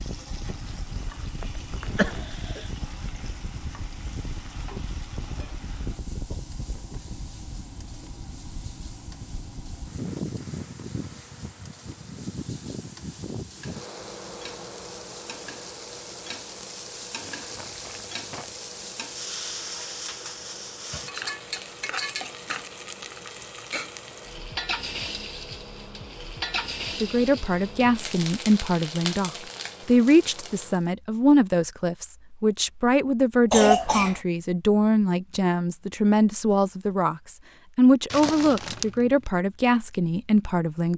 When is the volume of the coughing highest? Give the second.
34 s.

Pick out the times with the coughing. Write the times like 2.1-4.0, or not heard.
1.9-2.6, 33.5-34.2.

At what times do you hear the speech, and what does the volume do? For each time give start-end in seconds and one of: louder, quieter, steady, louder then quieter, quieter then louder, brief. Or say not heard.
27.0-40.9 steady.